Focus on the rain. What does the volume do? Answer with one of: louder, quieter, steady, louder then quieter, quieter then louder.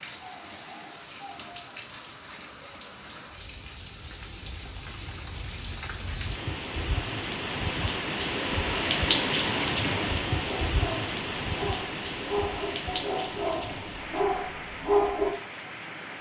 louder then quieter.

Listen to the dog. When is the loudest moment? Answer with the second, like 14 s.
15 s.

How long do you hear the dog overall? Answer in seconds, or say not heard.
5 s.